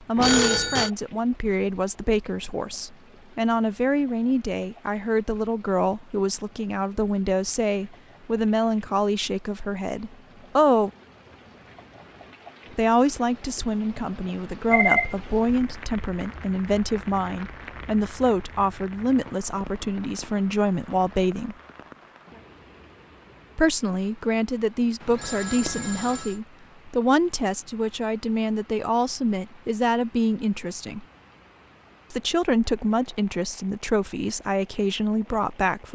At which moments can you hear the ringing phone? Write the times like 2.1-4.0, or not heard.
0.1-0.9, 14.7-15.7, 25.0-26.4.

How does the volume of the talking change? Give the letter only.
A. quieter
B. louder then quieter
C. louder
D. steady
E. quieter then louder
D.